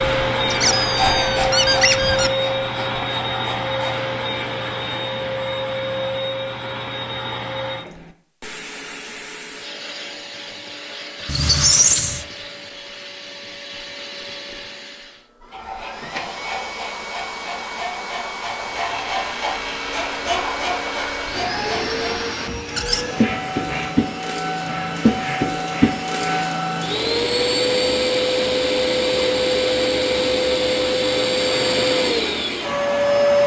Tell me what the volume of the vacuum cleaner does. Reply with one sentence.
The loudness of the vacuum cleaner goes down, then up.